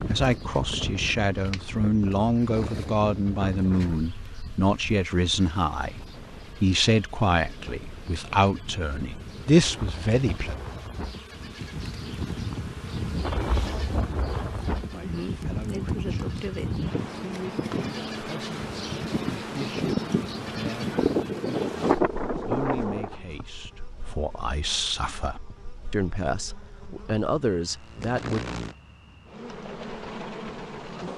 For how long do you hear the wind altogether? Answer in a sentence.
You can hear the wind for 23 seconds altogether.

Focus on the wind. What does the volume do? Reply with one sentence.
The volume of the wind goes down, then up.